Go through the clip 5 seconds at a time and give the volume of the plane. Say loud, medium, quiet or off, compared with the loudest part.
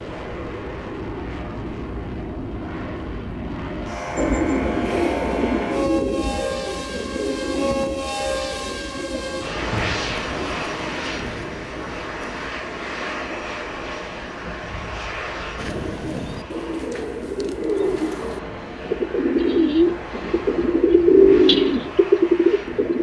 loud, loud, loud, medium, medium.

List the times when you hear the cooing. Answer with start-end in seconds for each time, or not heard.
4.2-12.5, 15.6-22.9.